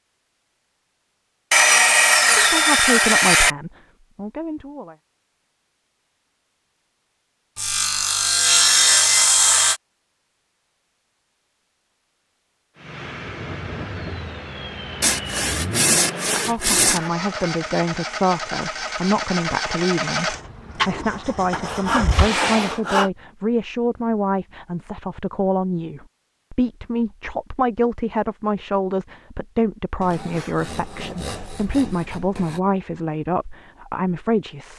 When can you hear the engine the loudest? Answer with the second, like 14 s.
20 s.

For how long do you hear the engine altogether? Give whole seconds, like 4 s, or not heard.
10 s.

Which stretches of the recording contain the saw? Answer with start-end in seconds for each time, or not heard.
1.5-3.5, 7.5-9.8, 15.0-17.0, 21.5-23.1, 30.0-32.6.